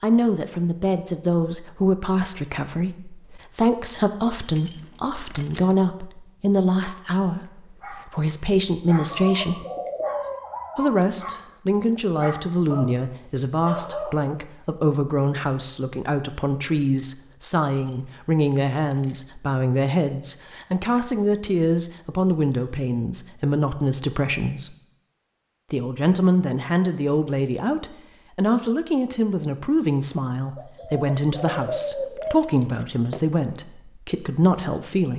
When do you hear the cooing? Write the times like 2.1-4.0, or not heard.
8.9-10.4, 30.6-32.5.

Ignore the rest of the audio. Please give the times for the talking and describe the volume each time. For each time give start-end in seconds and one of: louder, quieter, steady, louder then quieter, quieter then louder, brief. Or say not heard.
0.0-9.7 steady
10.8-24.8 steady
25.7-35.1 steady.